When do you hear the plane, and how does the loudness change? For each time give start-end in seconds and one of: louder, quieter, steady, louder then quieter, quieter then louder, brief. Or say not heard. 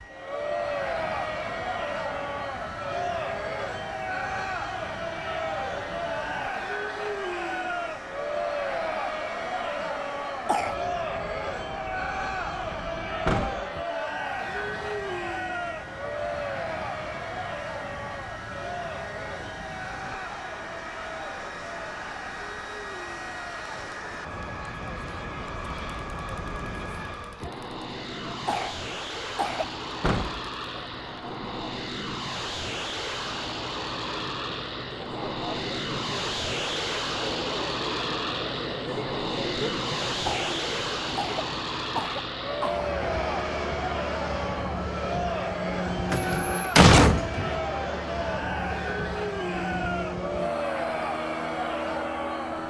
0.0-52.6 louder.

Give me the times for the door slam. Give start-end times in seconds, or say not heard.
13.2-13.7, 30.0-30.5, 46.1-47.5.